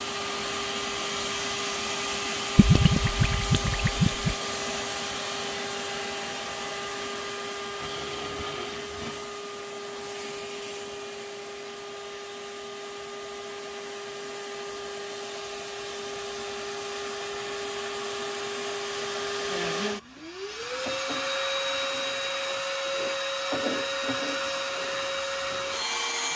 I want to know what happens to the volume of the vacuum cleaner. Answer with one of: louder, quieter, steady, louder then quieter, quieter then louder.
quieter then louder.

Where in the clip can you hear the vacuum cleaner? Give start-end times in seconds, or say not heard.
0.0-26.3.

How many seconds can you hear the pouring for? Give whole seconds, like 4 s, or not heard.
2 s.